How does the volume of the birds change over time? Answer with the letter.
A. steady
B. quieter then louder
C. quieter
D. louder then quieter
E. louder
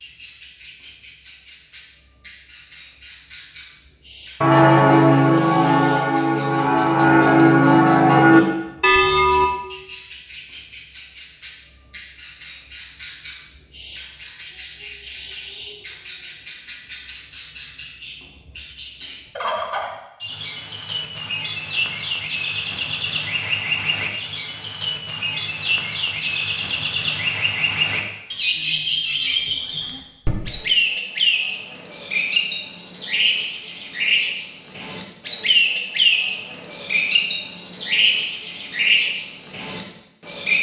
E.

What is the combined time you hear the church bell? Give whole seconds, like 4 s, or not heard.
5 s.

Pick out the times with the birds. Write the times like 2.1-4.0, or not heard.
0.0-40.5.